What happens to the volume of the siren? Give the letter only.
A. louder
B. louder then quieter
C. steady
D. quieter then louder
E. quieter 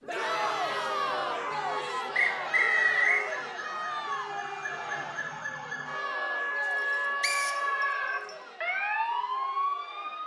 A.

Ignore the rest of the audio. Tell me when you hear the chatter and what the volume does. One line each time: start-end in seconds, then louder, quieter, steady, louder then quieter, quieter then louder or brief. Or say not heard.
0.1-10.2 quieter.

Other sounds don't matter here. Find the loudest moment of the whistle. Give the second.
3 s.